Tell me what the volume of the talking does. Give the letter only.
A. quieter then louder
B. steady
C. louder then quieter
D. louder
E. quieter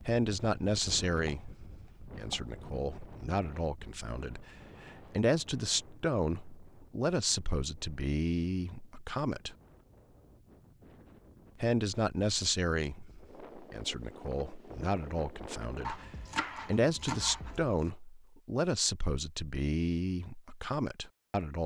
B.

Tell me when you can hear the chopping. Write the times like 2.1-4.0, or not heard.
0.6-2.6, 15.8-17.9.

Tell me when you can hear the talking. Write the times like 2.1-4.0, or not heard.
0.0-9.6, 11.6-21.6.